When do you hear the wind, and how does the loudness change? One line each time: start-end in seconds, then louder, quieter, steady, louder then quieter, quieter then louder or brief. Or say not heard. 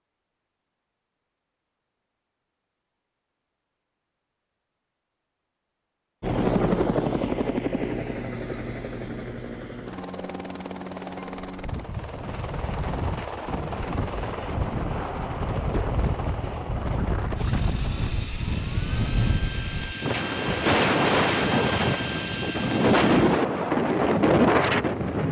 11.6-25.2 louder.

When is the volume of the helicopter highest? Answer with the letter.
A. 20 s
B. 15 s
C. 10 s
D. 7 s
D.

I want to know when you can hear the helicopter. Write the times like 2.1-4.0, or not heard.
6.2-25.2.